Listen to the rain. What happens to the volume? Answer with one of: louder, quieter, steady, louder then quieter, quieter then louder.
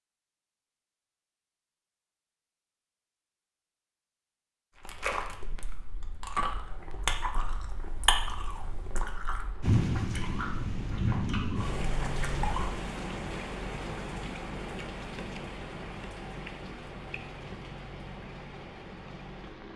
quieter.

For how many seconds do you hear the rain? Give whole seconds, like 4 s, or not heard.
10 s.